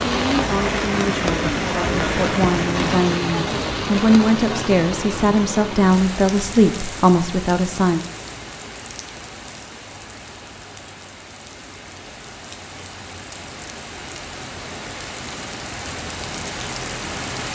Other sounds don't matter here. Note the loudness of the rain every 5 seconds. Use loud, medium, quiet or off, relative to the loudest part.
loud, medium, quiet, medium.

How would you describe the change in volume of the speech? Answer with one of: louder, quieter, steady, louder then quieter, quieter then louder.
louder.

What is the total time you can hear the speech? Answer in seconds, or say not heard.
8 s.